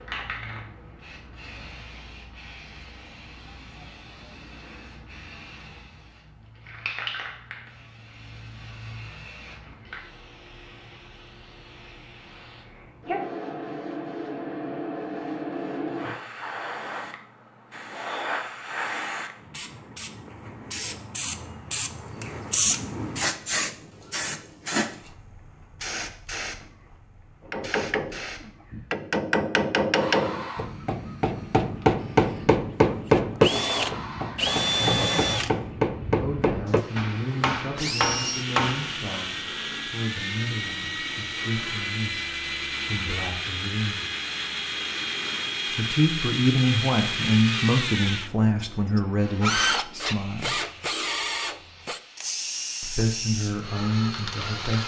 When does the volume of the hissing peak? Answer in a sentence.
The volume of the hissing peaks at 23 seconds.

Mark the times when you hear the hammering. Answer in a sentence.
You can hear the hammering from 27.4 to 39.0 s.